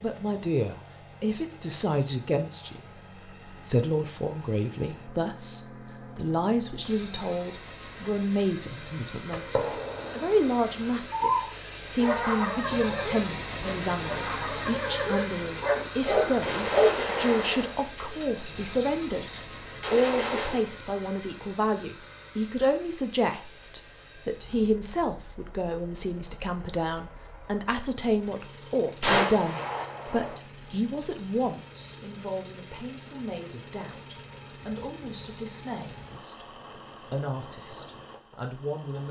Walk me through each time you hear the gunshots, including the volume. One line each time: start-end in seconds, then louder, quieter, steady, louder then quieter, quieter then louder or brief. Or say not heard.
9.3-10.9 brief
16.4-20.6 quieter then louder
29.0-30.4 brief.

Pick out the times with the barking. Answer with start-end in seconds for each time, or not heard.
11.1-17.1.